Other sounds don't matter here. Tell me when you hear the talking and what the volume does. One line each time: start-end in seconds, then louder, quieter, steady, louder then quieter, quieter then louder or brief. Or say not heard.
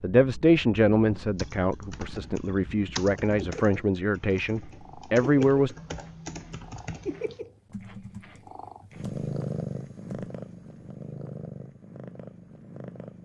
0.0-5.8 quieter then louder.